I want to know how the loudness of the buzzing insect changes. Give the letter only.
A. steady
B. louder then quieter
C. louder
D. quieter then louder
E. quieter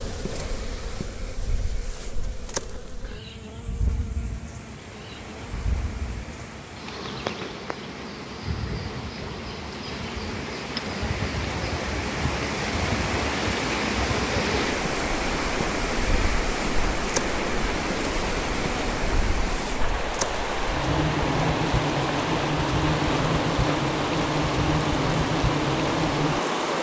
C.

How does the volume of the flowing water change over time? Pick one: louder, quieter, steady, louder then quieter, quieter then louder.
louder.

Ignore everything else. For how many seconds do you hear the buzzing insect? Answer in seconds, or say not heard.
27 s.